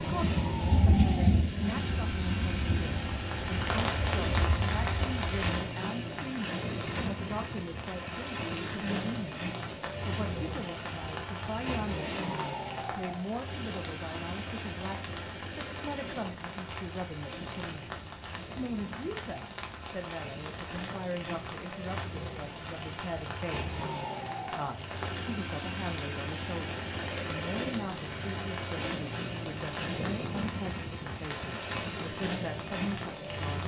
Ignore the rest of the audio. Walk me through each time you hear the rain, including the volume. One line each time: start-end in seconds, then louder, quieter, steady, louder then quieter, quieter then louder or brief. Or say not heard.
0.0-33.6 quieter.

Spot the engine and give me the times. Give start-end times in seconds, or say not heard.
0.0-33.6.